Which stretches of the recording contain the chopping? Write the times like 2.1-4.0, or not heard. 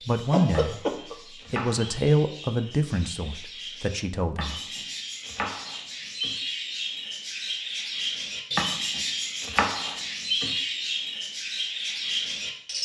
0.5-2.0, 4.3-6.3, 8.6-10.6.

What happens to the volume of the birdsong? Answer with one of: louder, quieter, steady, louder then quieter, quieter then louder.
louder.